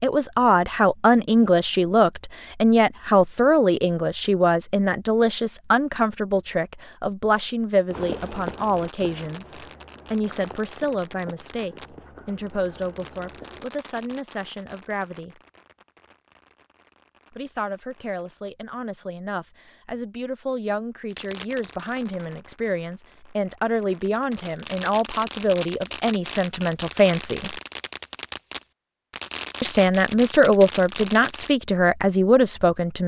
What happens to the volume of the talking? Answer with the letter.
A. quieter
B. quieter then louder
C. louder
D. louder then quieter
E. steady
B.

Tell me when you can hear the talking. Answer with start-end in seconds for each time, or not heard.
0.0-15.4, 17.3-27.6, 29.6-33.0.